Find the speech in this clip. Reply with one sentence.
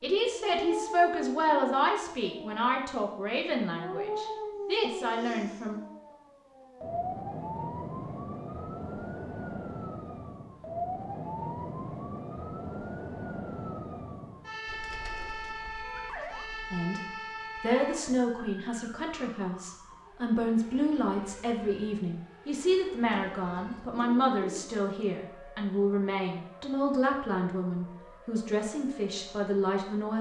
You can hear the speech from 0.0 to 5.8 s and from 16.7 to 30.1 s.